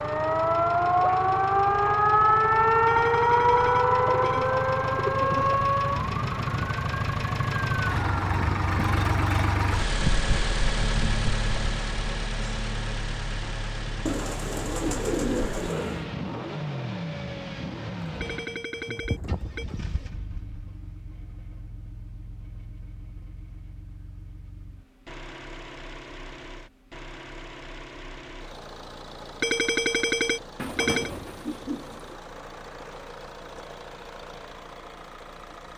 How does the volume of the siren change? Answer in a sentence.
The loudness of the siren goes down.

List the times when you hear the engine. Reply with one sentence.
The engine can be heard from 0.0 to 35.7 s.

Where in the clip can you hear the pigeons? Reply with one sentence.
The pigeons can be heard from 4.0 to 5.7 s, from 14.1 to 16.1 s, from 18.0 to 20.1 s and from 30.6 to 32.1 s.